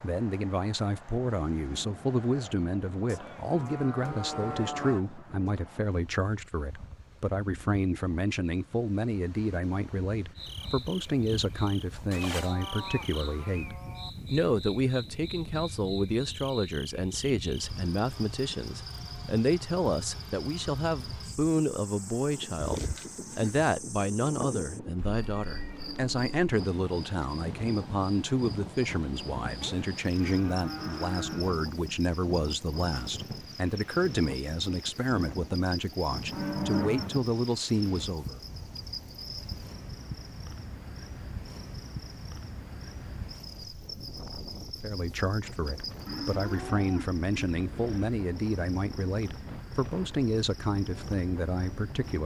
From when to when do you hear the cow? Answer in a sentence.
The cow can be heard from 3.0 to 5.0 s, from 12.1 to 14.1 s, from 22.6 to 23.8 s, from 29.6 to 31.6 s, from 36.3 to 37.1 s and from 46.0 to 48.1 s.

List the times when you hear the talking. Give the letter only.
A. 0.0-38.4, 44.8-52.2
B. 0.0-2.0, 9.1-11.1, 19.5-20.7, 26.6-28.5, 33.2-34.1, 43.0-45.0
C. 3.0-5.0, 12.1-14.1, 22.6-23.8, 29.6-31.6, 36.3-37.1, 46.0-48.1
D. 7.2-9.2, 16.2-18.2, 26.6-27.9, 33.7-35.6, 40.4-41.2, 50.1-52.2
A.